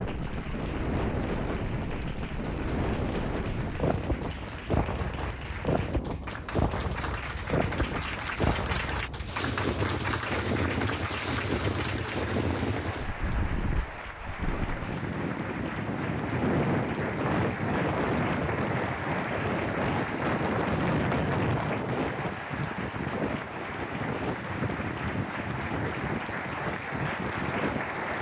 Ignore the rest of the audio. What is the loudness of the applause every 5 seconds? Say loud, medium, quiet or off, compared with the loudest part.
medium, loud, loud, loud, loud, loud.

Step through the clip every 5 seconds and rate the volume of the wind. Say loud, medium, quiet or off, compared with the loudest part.
loud, loud, loud, loud, loud, medium.